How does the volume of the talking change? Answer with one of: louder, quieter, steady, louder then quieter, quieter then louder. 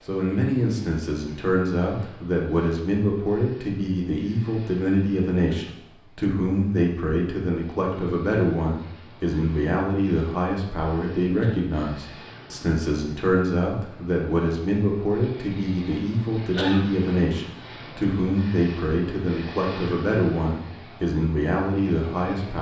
steady.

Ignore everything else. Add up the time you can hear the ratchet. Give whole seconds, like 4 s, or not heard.
not heard.